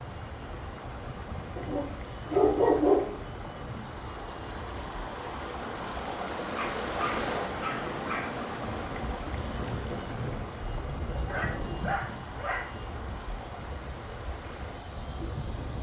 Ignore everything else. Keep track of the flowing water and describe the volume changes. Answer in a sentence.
The volume of the flowing water goes up, then down.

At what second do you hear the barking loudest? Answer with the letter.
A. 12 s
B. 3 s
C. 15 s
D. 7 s
B.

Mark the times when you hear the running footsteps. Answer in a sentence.
The running footsteps can't be heard in this clip.